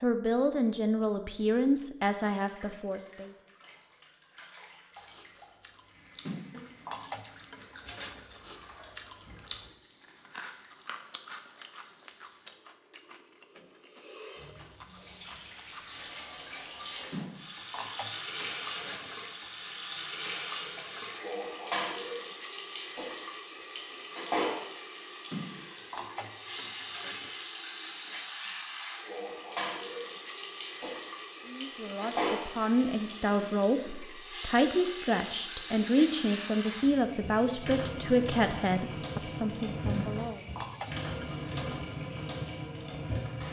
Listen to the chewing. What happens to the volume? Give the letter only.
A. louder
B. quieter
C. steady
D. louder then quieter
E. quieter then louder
D.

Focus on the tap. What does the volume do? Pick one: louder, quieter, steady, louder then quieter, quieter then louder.
louder.